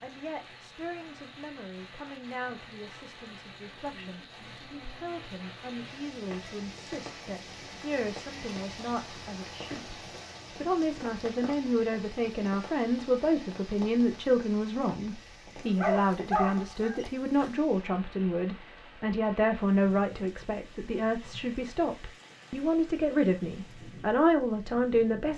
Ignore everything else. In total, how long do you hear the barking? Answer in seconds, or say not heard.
2 s.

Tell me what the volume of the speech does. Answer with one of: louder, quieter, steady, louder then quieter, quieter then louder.
louder.